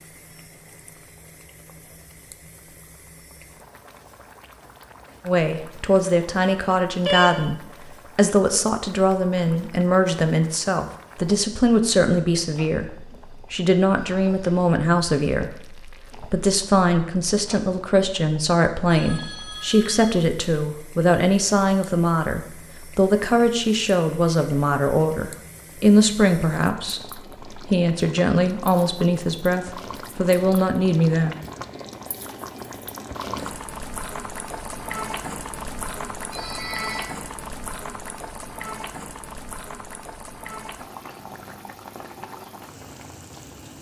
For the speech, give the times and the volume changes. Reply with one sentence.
You can hear the speech from 5.2 to 31.4 s, at a steady volume.